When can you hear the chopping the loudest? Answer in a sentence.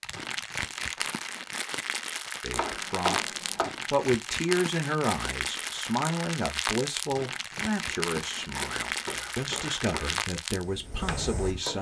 The loudest moment of the chopping is at 3 seconds.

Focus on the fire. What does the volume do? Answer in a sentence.
The loudness of the fire stays about the same.